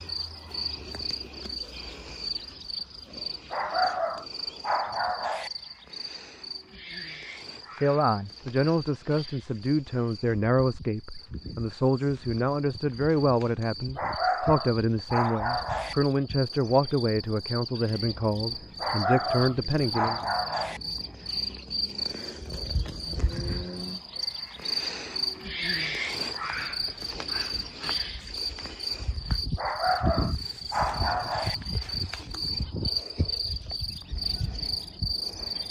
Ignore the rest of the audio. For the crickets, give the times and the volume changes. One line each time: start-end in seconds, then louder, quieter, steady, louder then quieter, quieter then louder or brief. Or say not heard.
0.0-35.6 quieter then louder.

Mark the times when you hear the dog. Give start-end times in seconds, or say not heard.
3.5-5.5, 13.9-15.9, 18.8-20.8, 29.6-31.6.